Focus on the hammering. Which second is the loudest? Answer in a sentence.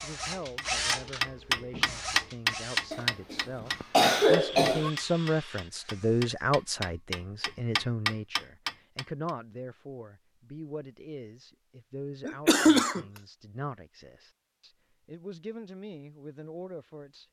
The volume of the hammering peaks at 2 seconds.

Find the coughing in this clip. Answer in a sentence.
You can hear the coughing from 2.9 to 4.9 s and from 12.2 to 13.1 s.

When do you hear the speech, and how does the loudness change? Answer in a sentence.
You can hear the speech from 0.0 to 17.2 s, getting louder then quieter.